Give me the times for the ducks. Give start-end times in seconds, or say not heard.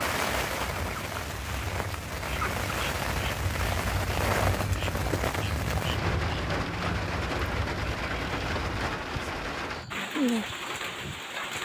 0.2-8.7.